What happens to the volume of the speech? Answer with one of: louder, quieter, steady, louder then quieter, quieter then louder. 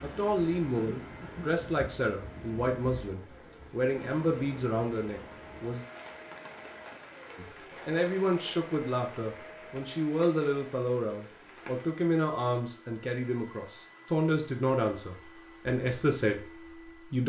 steady.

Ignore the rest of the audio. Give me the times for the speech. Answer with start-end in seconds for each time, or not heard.
0.0-5.8, 7.3-17.2.